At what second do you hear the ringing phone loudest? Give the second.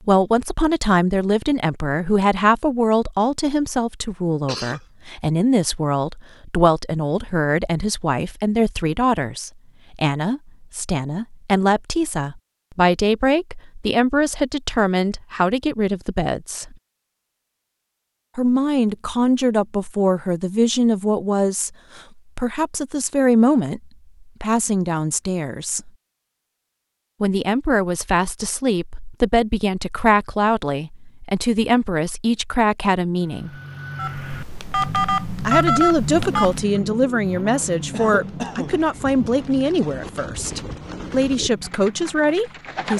36 s.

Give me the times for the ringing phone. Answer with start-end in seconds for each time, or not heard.
34.0-36.6.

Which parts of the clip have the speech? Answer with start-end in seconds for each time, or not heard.
0.1-16.8, 18.4-25.9, 27.2-33.5, 35.5-42.9.